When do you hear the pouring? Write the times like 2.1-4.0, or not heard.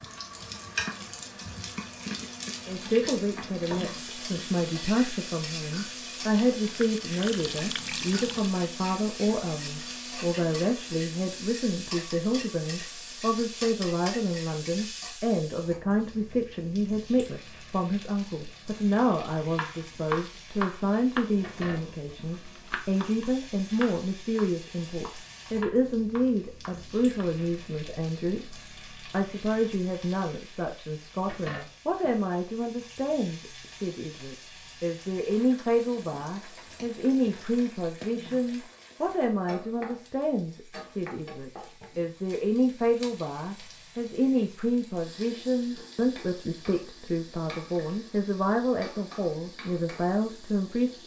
6.6-8.6.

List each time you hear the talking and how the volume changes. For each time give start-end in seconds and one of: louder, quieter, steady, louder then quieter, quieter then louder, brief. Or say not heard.
2.6-51.0 steady.